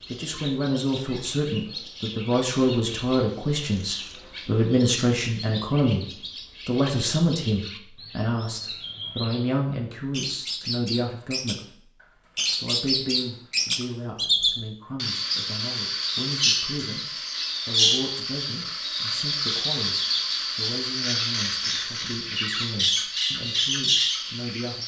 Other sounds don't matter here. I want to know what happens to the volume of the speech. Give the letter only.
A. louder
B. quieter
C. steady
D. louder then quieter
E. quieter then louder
B.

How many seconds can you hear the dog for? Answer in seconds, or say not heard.
not heard.